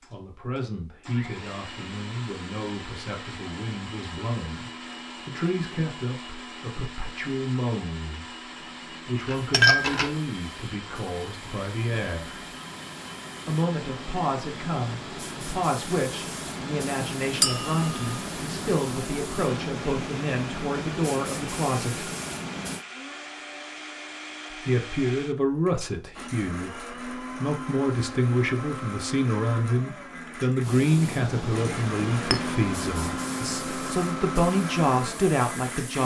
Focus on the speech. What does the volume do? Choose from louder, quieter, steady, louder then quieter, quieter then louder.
louder.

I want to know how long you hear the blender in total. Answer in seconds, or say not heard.
36 s.